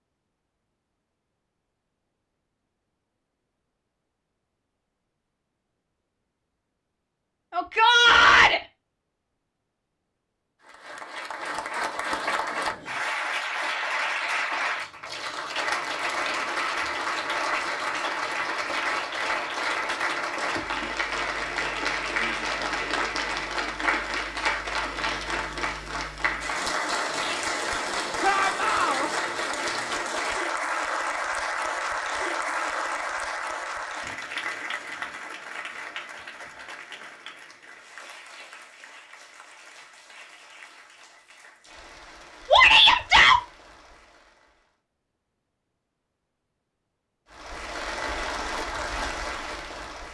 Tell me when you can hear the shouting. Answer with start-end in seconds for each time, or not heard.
7.5-8.6, 28.2-29.1, 42.5-43.4.